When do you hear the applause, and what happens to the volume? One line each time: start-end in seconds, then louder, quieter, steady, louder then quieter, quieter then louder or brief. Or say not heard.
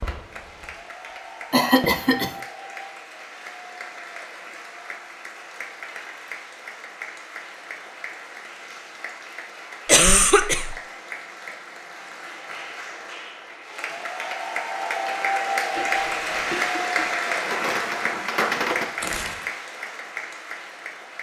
0.0-21.1 louder.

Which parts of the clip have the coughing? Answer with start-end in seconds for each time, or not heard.
1.5-2.3, 9.8-10.8, 15.8-17.1.